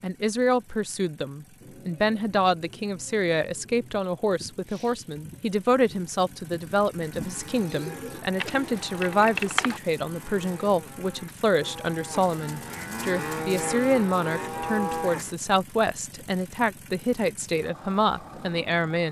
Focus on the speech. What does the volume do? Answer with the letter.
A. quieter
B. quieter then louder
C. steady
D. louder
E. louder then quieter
C.